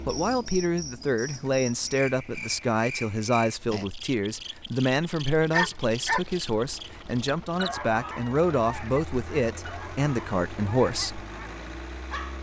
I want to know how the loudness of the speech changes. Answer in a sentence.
The loudness of the speech stays about the same.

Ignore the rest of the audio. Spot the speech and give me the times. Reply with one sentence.
You can hear the speech from 0.1 to 11.2 s.